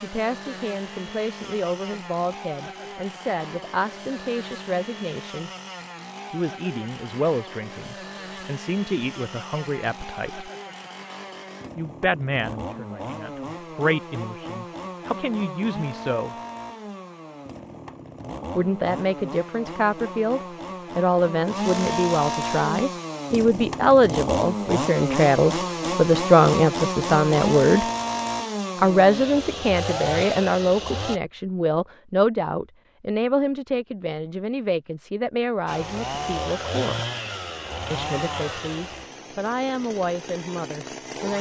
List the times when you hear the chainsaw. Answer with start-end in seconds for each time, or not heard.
0.0-31.2, 35.6-41.3.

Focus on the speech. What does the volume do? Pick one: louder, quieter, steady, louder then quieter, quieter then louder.
louder then quieter.